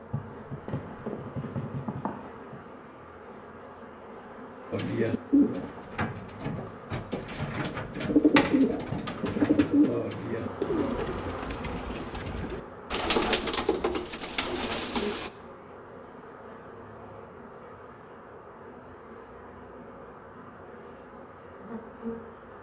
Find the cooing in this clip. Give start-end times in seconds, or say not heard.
4.7-15.3.